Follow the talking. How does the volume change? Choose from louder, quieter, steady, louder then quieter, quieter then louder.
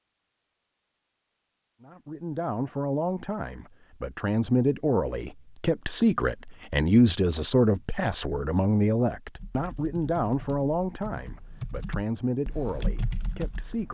louder then quieter.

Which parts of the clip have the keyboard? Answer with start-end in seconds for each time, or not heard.
9.3-13.9.